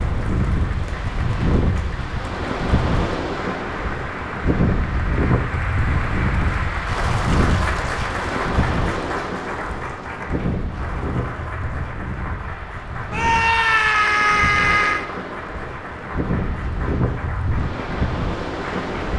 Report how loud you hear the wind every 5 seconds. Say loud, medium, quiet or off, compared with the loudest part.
loud, loud, medium, loud.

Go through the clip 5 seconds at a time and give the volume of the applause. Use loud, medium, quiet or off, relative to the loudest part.
medium, loud, medium, medium.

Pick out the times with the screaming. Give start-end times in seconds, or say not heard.
13.1-15.1.